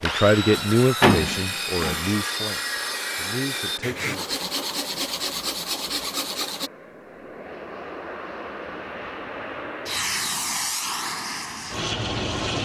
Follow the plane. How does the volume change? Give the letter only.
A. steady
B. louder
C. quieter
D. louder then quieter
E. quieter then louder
B.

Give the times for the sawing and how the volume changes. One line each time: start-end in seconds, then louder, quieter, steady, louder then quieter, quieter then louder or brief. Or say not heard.
0.0-6.7 steady.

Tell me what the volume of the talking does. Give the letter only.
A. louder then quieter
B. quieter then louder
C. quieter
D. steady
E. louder
B.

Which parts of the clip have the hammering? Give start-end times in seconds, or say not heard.
not heard.